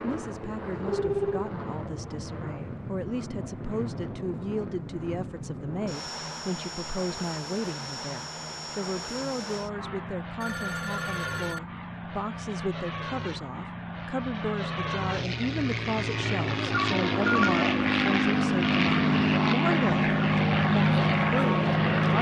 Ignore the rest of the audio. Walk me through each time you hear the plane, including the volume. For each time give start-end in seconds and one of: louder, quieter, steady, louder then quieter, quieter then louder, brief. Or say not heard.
0.0-22.1 louder.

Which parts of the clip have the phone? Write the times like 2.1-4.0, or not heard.
0.8-1.5, 9.8-11.6, 16.7-17.6.